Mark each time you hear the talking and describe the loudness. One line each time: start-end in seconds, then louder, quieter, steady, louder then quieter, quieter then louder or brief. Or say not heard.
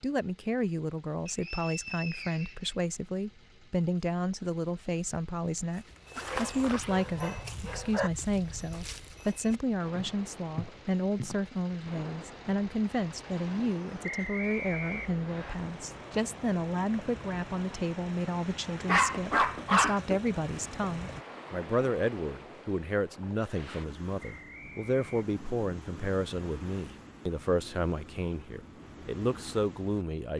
0.0-30.3 steady.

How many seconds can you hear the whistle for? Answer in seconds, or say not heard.
4 s.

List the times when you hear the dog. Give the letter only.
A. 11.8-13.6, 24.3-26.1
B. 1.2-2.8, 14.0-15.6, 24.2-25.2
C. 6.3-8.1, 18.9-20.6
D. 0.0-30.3
C.